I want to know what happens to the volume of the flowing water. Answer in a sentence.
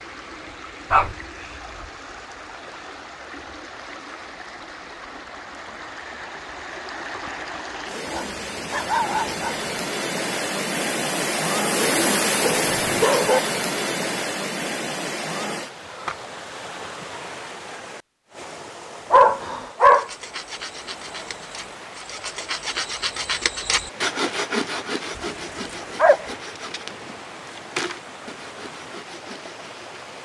The volume of the flowing water goes up, then down.